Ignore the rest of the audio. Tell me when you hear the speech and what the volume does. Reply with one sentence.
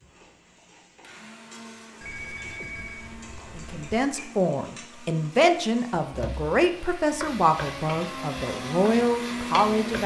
You can hear the speech from 3.5 to 10.0 s, at a steady volume.